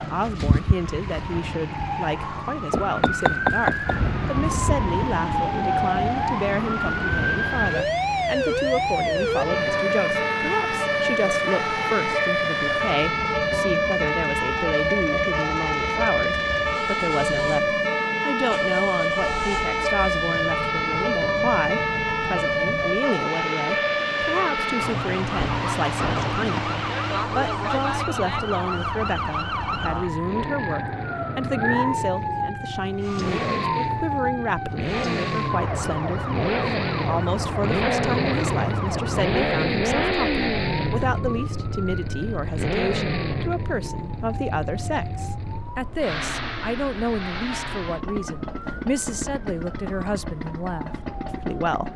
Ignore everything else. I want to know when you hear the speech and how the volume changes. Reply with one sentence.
You can hear the speech from 0.0 to 51.9 s, at a steady volume.